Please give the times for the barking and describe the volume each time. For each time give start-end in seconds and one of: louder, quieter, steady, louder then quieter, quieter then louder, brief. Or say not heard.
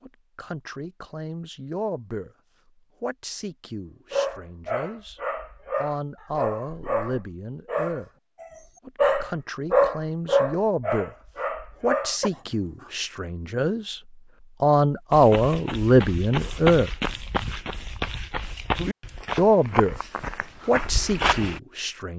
4.1-12.9 louder then quieter.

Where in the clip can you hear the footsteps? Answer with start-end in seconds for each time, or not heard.
15.1-21.6.